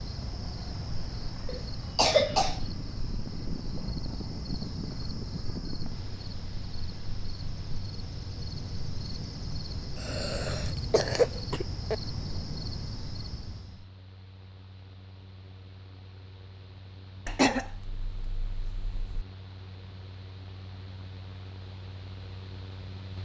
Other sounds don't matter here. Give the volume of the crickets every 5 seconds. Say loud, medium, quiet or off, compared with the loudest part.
loud, loud, loud, off, off.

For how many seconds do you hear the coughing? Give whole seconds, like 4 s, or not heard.
5 s.